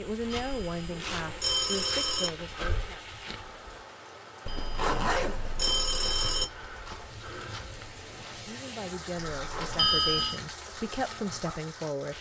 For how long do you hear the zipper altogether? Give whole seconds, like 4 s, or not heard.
4 s.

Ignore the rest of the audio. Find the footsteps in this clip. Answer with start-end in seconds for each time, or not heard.
0.0-3.9, 6.0-8.5.